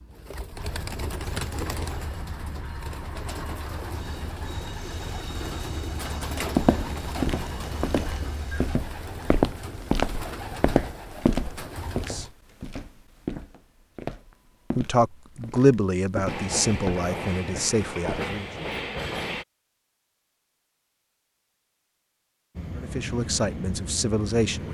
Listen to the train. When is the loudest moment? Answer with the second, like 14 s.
19 s.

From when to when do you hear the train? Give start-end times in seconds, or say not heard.
0.0-8.8, 16.2-19.4, 22.6-24.6.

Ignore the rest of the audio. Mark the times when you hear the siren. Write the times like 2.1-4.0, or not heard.
not heard.